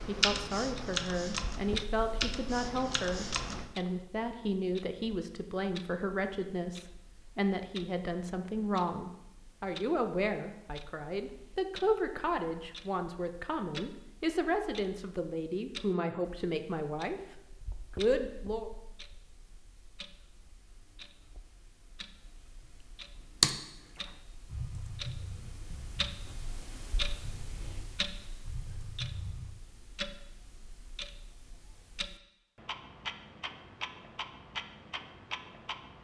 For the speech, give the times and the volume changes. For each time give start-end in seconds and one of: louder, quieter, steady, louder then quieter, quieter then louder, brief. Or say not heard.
0.1-17.2 steady
17.9-18.7 brief.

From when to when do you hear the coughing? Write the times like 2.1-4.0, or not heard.
not heard.